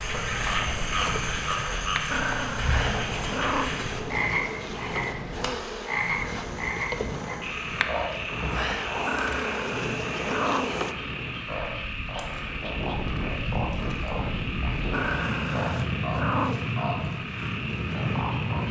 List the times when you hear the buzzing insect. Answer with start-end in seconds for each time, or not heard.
0.1-10.9.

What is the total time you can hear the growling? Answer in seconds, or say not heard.
5 s.